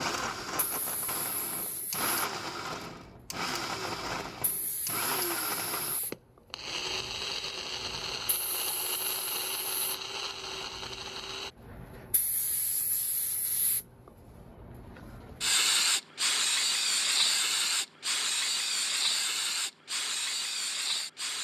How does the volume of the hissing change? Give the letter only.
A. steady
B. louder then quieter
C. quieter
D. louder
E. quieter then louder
D.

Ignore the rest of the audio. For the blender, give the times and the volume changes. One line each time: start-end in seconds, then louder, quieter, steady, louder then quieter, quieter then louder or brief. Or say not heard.
0.0-11.5 steady.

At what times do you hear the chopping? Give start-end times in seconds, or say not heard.
not heard.